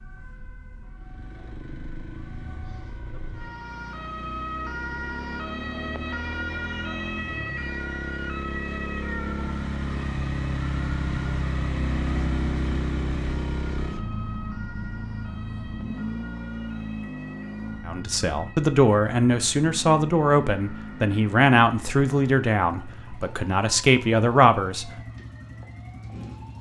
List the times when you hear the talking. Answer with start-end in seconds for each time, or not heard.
17.9-24.9.